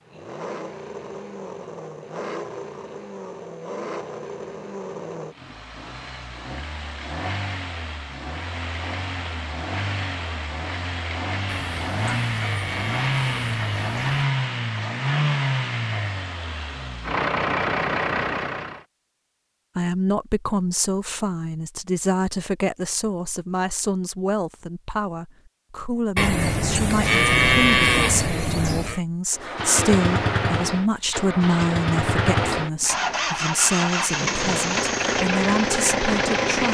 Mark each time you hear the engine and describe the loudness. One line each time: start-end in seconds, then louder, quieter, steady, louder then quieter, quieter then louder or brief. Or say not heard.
0.0-18.8 louder
29.3-36.6 steady.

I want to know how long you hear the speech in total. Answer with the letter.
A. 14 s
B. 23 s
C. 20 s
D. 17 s
D.